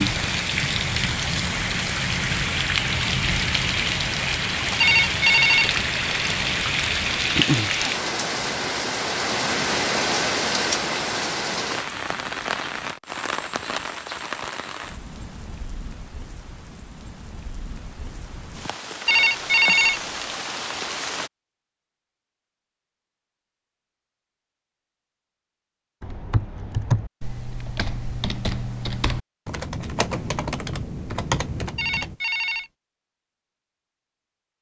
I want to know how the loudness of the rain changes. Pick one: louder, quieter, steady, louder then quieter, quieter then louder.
quieter.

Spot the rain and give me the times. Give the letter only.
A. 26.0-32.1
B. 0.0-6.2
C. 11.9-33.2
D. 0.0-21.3
D.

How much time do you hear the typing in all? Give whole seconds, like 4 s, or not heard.
6 s.